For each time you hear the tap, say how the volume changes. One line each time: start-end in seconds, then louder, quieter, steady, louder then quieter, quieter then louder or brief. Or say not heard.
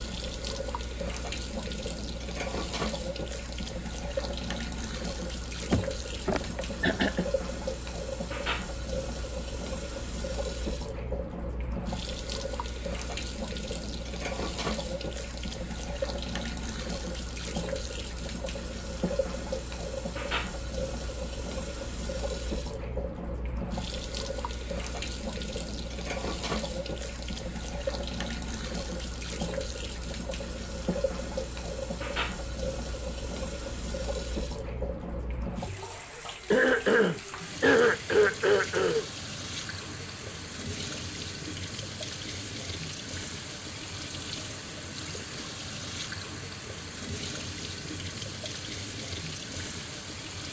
0.0-50.4 steady.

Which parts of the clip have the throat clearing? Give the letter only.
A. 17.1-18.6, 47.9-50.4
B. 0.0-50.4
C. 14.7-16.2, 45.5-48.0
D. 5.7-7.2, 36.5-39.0
D.